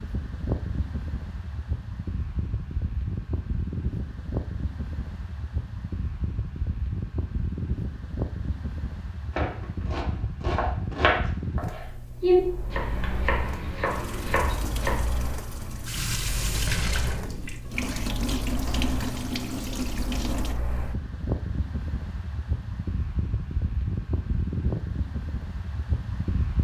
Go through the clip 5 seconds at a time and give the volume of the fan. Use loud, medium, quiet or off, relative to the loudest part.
loud, loud, loud, medium, loud, loud.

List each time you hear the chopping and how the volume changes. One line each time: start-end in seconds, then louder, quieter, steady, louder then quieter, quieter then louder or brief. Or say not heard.
9.3-15.0 louder then quieter.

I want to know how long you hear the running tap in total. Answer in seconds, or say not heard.
7 s.